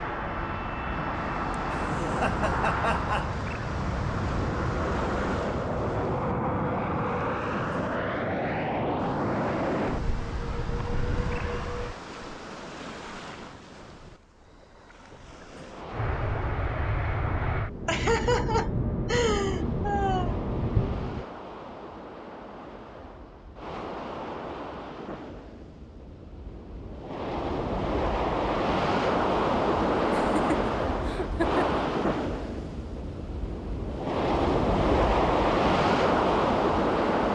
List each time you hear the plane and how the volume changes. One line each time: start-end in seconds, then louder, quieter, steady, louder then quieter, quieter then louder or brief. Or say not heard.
0.0-11.9 steady
15.9-21.2 steady.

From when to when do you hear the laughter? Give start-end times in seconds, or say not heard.
1.5-3.3, 17.9-20.4, 30.1-31.6.